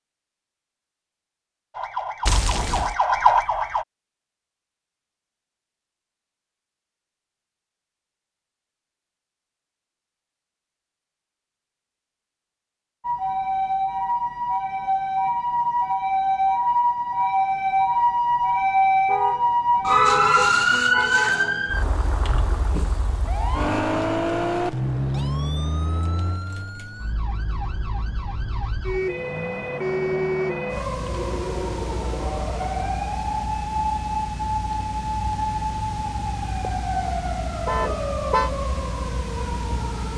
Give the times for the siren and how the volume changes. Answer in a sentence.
The siren can be heard briefly from 1.7 to 3.9 s; and from 13.0 to 40.1 s, getting quieter.